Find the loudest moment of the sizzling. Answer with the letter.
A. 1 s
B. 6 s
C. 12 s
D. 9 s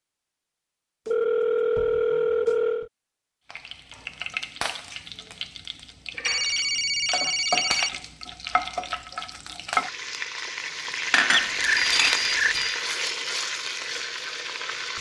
C.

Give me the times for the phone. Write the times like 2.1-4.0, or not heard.
1.1-2.9, 6.2-7.9, 11.3-12.8.